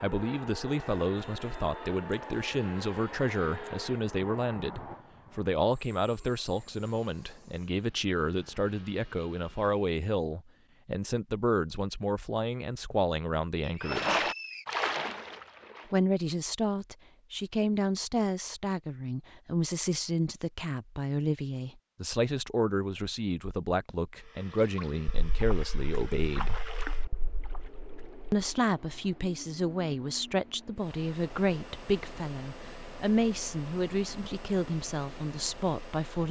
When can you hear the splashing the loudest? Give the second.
14 s.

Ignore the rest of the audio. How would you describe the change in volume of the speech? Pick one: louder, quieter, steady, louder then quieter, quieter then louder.
steady.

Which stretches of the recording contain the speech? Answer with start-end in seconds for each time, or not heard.
0.0-14.3, 15.9-26.6, 28.3-36.2.